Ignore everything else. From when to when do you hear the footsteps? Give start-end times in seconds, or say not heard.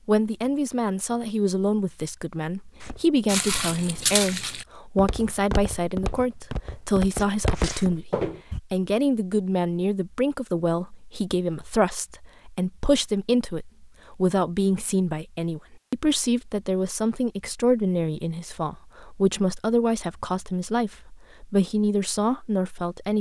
2.8-8.6.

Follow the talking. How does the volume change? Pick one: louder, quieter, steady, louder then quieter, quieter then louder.
steady.